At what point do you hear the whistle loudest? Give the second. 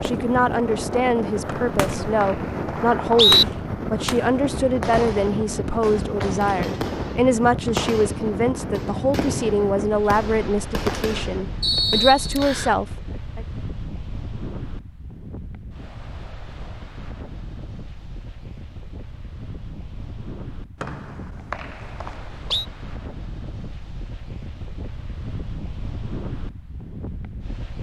3 s.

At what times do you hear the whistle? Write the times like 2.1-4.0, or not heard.
1.4-3.5, 11.6-12.7, 20.8-22.6.